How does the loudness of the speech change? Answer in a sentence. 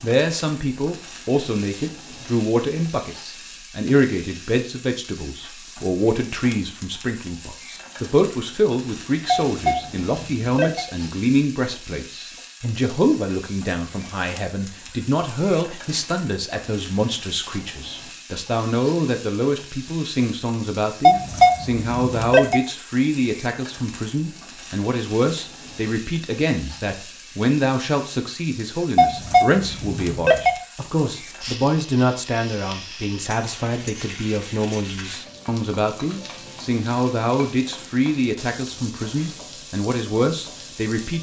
The volume of the speech stays about the same.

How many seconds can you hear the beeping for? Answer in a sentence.
You can hear the beeping for 5 seconds altogether.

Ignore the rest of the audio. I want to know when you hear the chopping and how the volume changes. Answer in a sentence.
The chopping can't be heard in this clip.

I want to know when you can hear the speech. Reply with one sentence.
The speech can be heard from 0.0 to 41.1 s.